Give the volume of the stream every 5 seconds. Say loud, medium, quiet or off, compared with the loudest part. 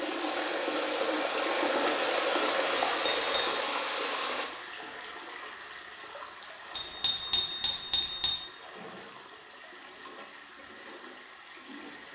loud, quiet, quiet.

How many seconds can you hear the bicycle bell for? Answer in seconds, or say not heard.
2 s.